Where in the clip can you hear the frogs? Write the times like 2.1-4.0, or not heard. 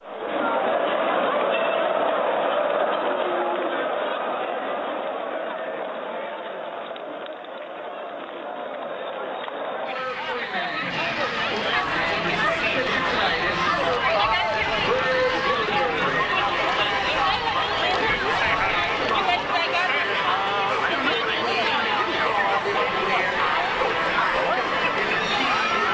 not heard.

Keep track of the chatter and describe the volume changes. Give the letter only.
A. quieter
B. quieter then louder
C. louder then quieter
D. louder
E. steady
B.